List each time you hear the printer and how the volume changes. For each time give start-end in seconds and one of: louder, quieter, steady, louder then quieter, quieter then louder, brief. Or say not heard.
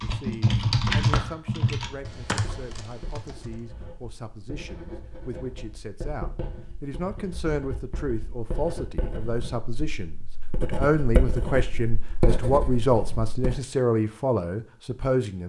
not heard.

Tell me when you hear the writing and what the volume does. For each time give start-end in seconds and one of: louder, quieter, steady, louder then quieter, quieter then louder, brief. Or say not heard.
1.9-13.6 louder.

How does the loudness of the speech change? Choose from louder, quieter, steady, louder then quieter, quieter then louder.
louder.